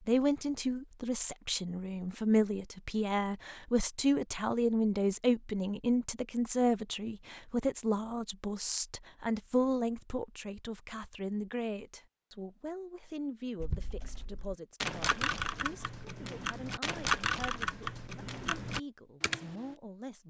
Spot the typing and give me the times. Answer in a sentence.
You can hear the typing from 13.6 to 19.8 s.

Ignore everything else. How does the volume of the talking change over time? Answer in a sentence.
The loudness of the talking goes down.